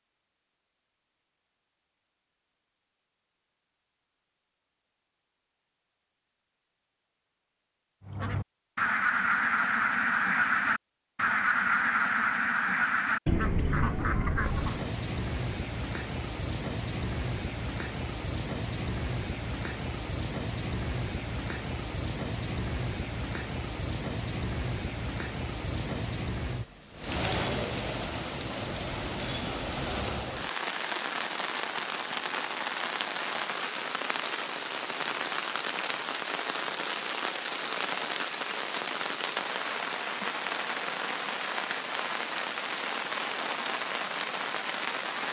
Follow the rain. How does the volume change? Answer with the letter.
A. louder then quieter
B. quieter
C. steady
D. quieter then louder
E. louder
C.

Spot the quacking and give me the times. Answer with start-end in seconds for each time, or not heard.
8.1-14.8.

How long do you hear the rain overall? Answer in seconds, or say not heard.
31 s.